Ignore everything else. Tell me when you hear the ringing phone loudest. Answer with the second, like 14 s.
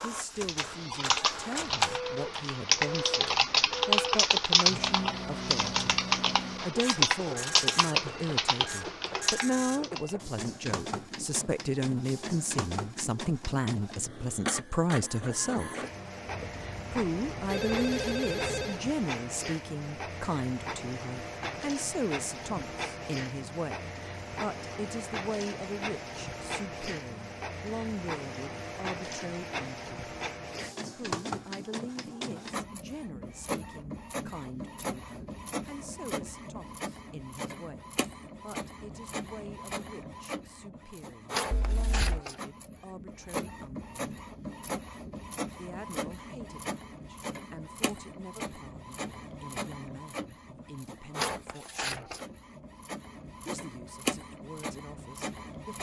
18 s.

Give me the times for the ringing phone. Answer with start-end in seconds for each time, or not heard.
16.2-18.8, 41.5-42.2.